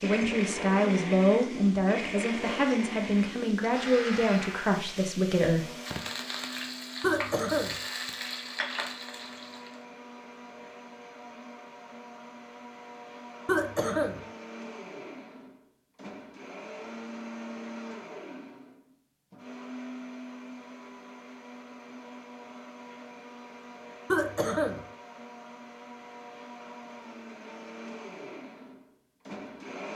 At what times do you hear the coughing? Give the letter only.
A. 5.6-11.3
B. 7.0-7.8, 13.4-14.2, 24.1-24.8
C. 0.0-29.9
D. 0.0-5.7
B.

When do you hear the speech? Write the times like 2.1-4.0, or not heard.
0.0-5.7.